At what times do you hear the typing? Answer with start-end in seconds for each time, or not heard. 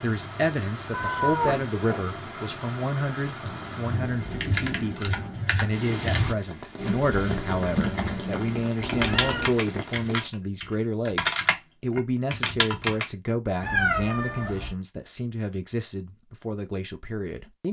3.4-13.1.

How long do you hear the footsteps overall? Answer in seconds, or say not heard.
not heard.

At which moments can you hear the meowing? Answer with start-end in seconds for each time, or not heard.
0.9-2.5, 8.8-9.6, 13.6-14.8.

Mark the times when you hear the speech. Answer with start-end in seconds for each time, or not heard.
0.0-17.6.